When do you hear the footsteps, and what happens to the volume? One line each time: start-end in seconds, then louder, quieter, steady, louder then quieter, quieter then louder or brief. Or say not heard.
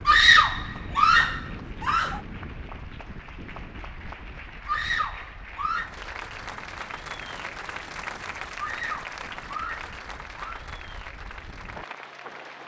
not heard.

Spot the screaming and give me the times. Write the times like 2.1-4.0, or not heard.
0.1-2.2, 4.7-5.9, 8.6-10.7.